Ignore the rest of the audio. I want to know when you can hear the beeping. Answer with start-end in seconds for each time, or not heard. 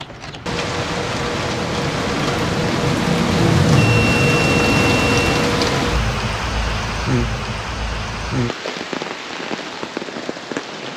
3.8-5.3.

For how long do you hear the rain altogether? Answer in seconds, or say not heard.
11 s.